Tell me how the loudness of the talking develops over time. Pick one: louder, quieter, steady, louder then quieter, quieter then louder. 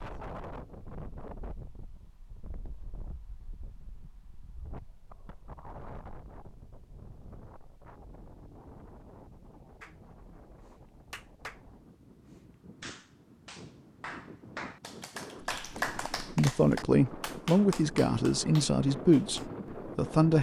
quieter.